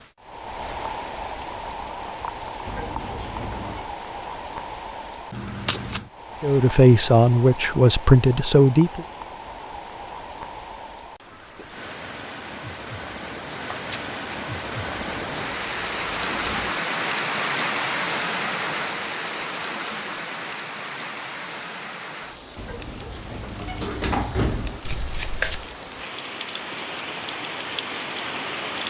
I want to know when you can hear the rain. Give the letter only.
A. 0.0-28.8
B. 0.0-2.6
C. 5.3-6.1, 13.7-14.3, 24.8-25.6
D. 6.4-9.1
A.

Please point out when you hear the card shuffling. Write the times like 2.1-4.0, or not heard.
5.3-6.1, 13.7-14.3, 24.8-25.6.